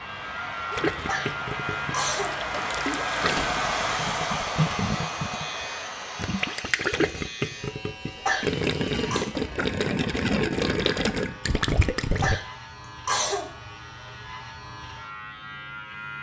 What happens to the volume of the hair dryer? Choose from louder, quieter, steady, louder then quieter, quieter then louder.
louder then quieter.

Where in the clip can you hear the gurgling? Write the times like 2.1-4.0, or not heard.
0.7-12.4.